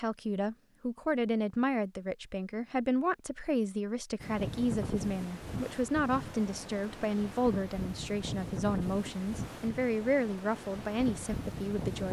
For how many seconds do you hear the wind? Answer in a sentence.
The wind can be heard for 8 seconds in total.